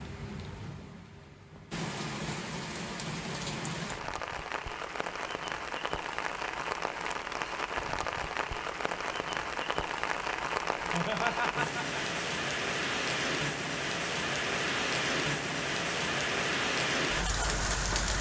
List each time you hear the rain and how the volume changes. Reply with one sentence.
The rain can be heard from 0.0 to 18.1 s, getting louder.